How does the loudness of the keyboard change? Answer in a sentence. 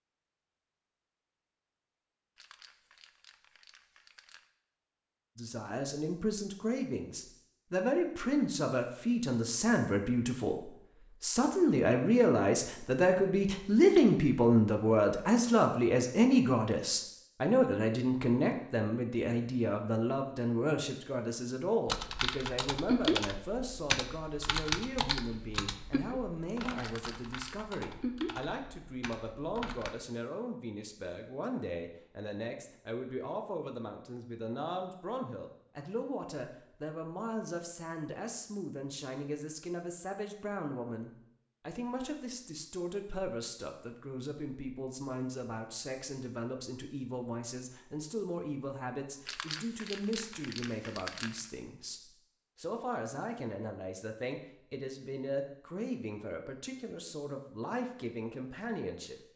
The volume of the keyboard goes down.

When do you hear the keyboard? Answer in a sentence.
The keyboard can be heard from 21.9 to 29.9 s.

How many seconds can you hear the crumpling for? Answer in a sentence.
You can hear the crumpling for 5 seconds altogether.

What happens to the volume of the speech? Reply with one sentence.
The volume of the speech goes down.